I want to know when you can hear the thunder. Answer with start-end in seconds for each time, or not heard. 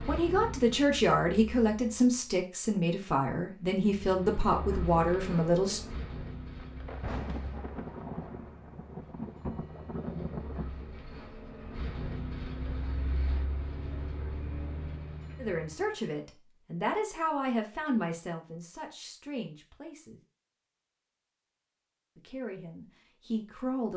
6.6-10.7.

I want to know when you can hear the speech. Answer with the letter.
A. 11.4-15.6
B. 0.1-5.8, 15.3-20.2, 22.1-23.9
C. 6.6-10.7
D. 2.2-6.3
B.